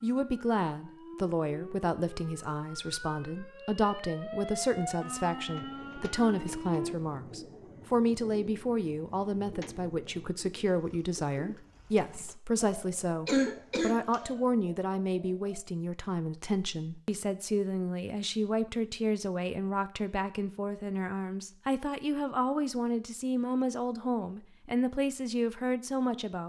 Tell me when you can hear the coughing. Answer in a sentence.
The coughing can be heard from 13.2 to 14.2 s.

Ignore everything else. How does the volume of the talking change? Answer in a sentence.
The volume of the talking stays about the same.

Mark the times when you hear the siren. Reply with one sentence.
The siren can be heard from 0.0 to 7.0 s.